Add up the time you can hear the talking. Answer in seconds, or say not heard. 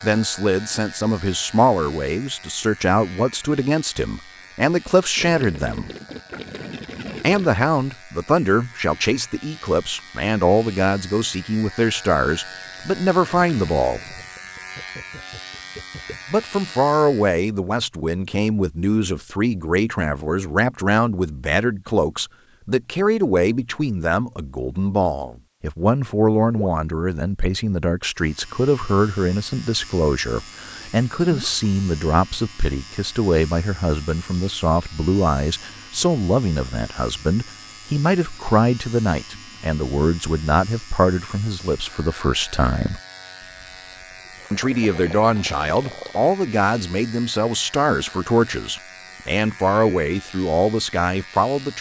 47 s.